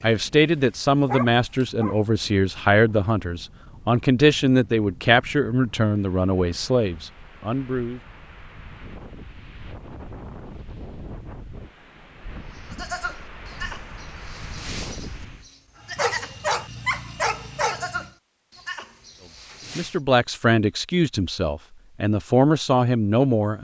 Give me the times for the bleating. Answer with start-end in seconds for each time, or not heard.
12.5-20.0.